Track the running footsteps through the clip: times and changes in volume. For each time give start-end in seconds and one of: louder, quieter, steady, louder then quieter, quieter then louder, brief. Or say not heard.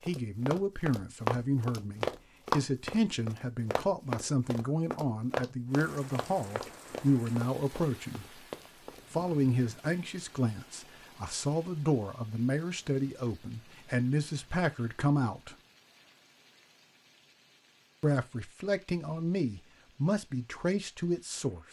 0.0-9.3 quieter.